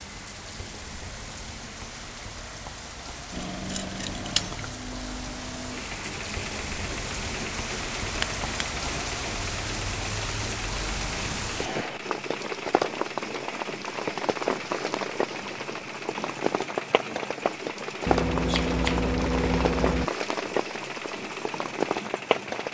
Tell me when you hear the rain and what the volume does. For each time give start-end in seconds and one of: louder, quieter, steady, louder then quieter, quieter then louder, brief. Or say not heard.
0.0-22.6 louder.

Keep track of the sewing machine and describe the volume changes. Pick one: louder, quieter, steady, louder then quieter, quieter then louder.
steady.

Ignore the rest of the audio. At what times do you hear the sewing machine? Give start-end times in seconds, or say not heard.
3.3-22.6.